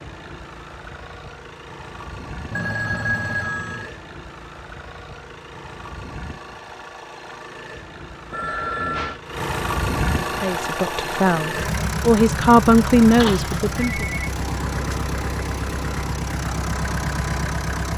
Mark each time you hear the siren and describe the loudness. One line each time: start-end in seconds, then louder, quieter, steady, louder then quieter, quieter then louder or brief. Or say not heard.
not heard.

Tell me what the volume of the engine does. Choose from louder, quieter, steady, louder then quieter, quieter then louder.
louder.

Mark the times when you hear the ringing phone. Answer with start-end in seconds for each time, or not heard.
2.5-3.9, 8.3-9.2, 13.2-14.3.